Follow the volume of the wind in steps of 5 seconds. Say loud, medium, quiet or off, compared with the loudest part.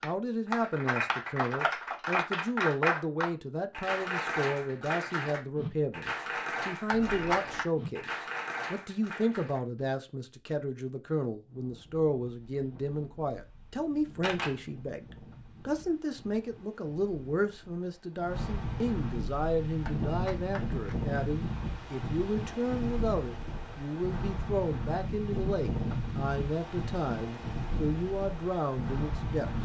off, off, quiet, medium, loud, loud.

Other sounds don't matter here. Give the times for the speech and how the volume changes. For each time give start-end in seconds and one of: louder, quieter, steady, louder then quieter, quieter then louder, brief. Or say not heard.
0.0-29.5 steady.